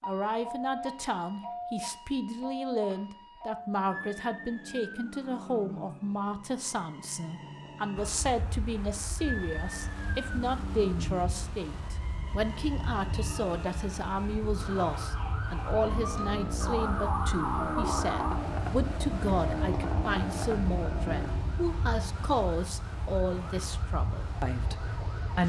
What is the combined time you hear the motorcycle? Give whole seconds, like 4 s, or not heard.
6 s.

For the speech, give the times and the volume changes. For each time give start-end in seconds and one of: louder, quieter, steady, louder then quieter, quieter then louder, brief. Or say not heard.
0.0-25.4 steady.